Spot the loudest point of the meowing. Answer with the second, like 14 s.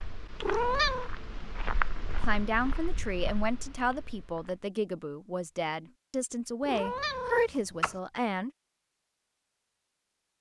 1 s.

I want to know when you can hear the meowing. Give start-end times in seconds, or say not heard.
0.4-1.1, 6.7-8.0.